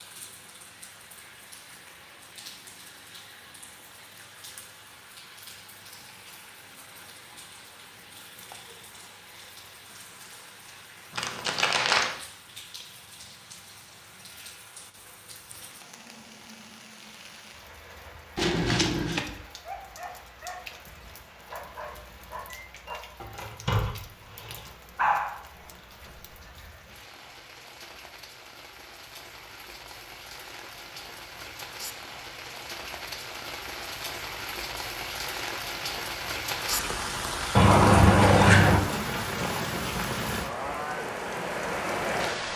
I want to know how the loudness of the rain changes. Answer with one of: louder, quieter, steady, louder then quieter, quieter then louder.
louder.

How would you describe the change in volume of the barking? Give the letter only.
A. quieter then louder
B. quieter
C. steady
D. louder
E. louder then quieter
D.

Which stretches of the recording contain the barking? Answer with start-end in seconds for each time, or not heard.
19.4-26.4.